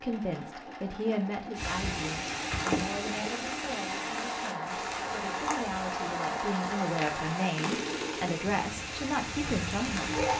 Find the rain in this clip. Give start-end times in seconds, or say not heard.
1.6-10.3.